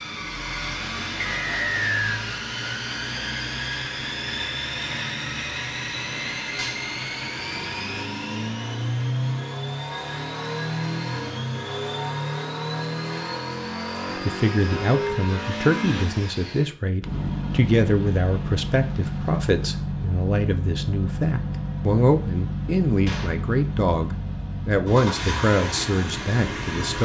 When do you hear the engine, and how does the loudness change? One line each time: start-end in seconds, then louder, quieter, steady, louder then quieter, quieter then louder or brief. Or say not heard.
0.0-27.0 steady.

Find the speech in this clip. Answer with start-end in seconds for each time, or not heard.
14.2-27.0.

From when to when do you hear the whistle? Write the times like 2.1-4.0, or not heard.
1.2-2.2.